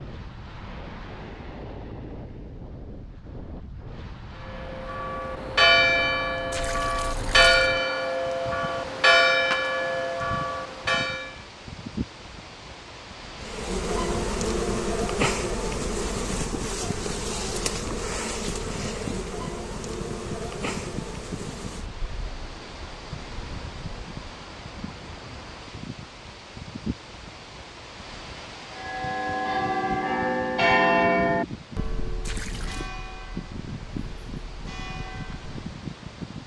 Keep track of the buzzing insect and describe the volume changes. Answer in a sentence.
The loudness of the buzzing insect goes down.